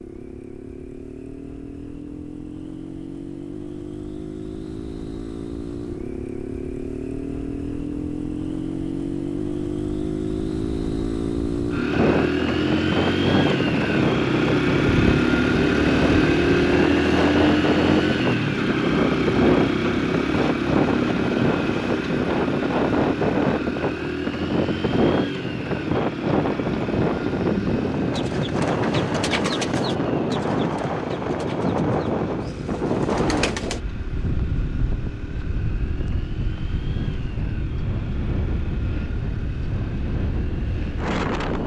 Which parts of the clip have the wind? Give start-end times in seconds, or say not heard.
11.9-41.6.